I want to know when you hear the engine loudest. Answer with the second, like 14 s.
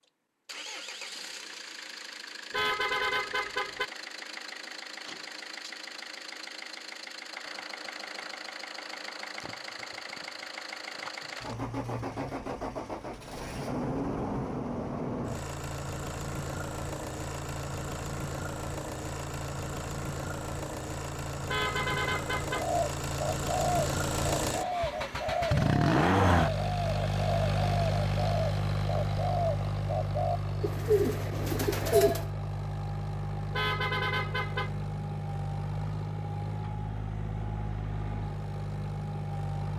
26 s.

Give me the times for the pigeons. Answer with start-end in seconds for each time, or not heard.
22.5-32.3.